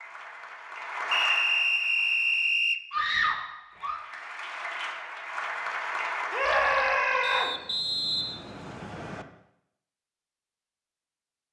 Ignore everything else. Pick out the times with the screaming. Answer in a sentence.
You can hear the screaming from 2.9 to 4.0 s and from 6.3 to 7.5 s.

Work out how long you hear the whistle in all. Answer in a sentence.
The whistle can be heard for 4 seconds in total.